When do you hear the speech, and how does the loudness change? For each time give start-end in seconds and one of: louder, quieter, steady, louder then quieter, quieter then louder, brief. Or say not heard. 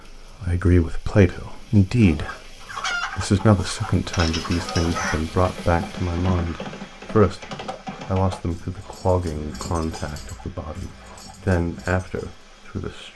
0.4-13.1 quieter.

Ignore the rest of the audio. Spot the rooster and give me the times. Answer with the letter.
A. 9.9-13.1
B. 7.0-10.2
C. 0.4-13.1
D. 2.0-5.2
D.